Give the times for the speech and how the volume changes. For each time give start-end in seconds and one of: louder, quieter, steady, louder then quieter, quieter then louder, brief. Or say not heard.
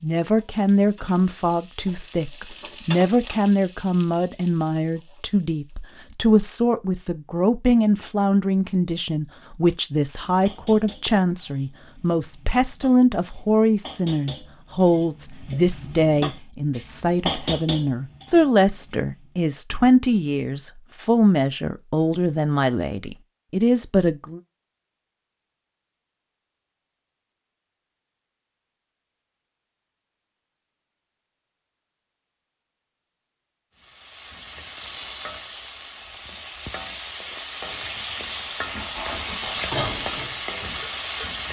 0.0-24.4 steady.